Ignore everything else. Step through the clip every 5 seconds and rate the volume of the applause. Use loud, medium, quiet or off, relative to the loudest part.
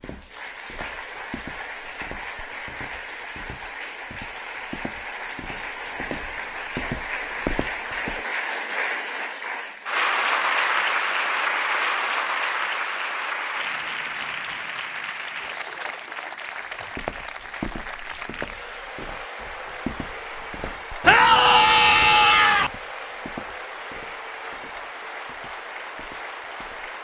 medium, medium, loud, medium, medium, medium.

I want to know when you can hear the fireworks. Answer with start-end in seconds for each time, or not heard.
not heard.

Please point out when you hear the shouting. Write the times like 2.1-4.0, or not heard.
21.0-22.7.